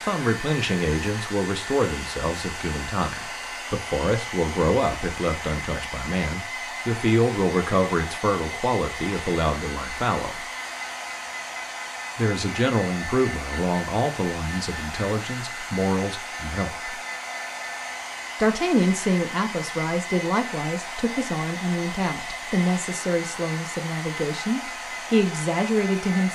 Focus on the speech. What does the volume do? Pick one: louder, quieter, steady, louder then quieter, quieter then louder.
steady.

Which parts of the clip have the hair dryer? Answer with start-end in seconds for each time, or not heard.
0.0-26.2.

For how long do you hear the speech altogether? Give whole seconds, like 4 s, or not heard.
23 s.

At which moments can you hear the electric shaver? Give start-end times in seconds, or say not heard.
not heard.